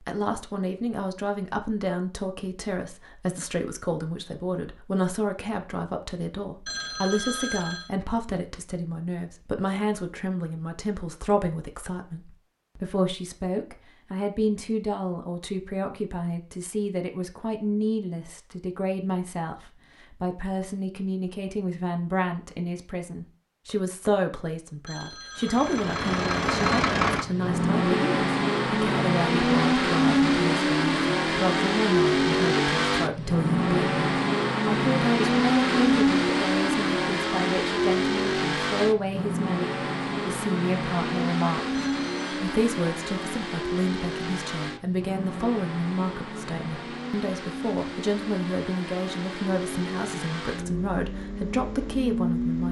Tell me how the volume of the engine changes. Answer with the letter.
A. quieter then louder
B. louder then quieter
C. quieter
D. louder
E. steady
C.